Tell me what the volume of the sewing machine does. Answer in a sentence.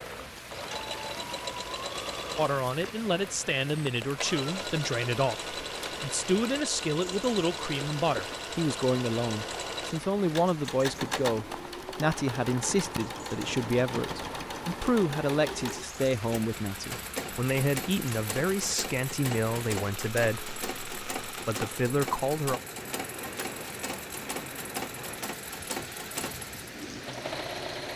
The volume of the sewing machine stays about the same.